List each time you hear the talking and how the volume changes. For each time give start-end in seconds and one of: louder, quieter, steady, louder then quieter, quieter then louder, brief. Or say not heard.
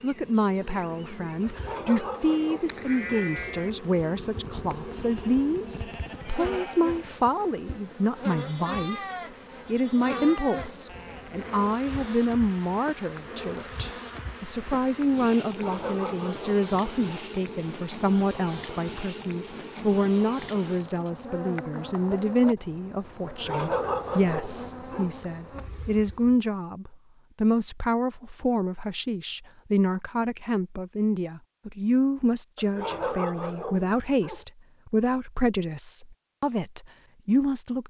0.0-37.8 steady.